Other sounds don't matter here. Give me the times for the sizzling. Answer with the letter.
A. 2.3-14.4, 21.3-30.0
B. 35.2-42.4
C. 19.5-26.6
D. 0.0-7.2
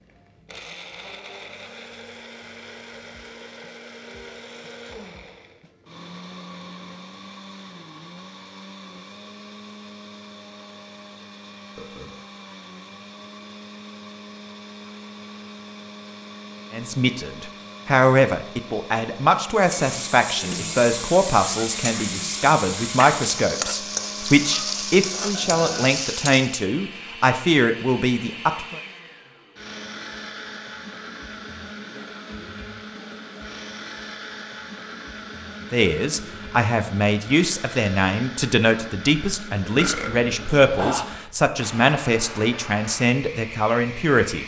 C.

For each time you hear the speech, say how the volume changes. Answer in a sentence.
You can hear the speech from 16.7 to 28.8 s, at a steady volume; and from 35.7 to 44.4 s, at a steady volume.